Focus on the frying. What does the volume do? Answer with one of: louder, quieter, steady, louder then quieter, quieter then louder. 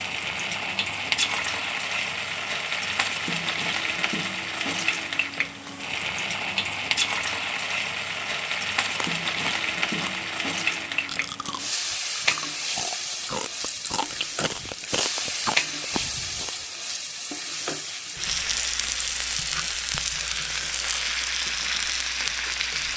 steady.